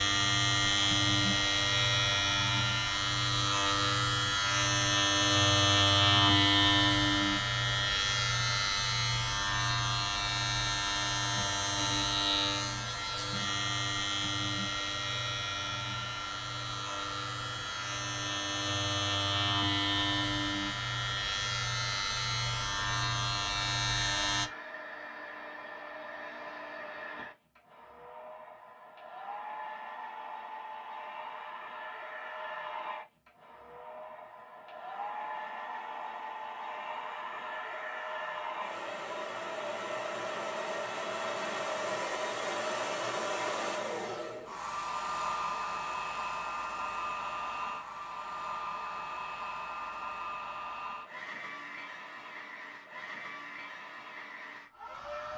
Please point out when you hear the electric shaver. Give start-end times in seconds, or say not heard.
0.0-24.5.